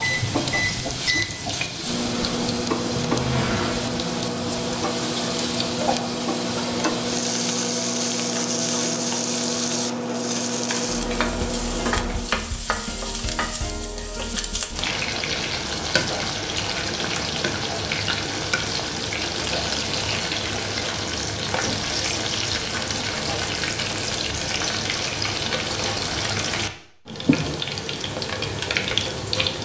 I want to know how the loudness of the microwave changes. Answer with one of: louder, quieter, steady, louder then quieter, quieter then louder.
steady.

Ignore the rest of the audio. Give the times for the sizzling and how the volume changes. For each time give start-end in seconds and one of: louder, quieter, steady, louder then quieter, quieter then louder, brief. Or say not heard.
0.0-29.6 steady.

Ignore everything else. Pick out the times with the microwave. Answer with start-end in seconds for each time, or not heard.
0.0-12.5.